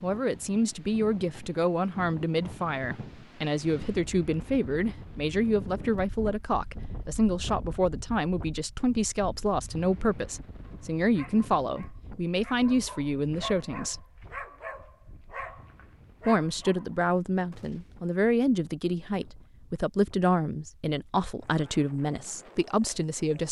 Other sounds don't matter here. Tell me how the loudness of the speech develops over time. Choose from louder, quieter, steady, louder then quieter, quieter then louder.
steady.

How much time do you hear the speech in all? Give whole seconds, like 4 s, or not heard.
21 s.